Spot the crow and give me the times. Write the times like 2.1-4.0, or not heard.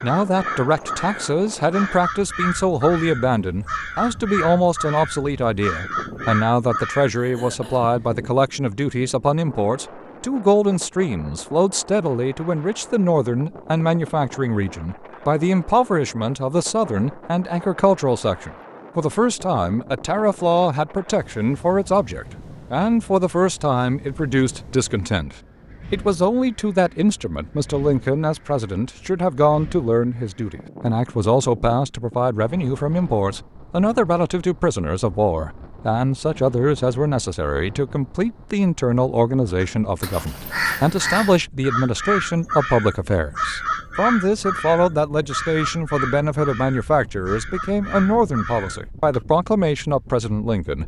0.0-7.1, 39.6-49.2.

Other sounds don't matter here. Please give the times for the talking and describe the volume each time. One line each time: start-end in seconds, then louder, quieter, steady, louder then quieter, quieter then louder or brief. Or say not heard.
0.0-50.8 steady.